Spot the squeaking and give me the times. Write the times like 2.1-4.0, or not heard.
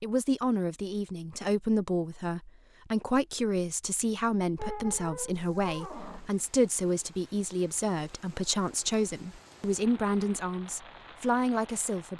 4.5-6.3.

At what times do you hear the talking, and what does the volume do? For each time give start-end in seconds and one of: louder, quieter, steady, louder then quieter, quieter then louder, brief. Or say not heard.
0.0-12.1 steady.